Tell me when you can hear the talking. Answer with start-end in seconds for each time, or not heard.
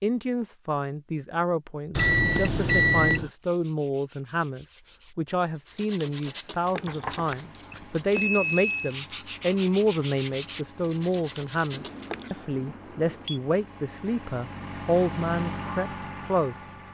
0.0-16.7.